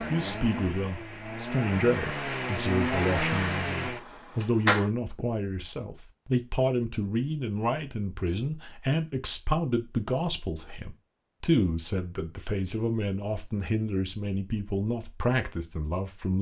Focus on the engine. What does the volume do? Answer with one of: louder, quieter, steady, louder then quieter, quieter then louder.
louder then quieter.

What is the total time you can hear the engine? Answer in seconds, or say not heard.
5 s.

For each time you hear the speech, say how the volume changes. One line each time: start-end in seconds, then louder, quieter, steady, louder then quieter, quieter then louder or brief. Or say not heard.
0.1-16.3 steady.